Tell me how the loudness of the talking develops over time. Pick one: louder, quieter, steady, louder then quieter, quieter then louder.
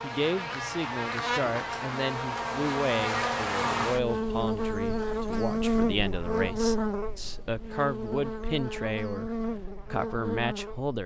steady.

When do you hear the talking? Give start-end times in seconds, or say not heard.
0.0-11.0.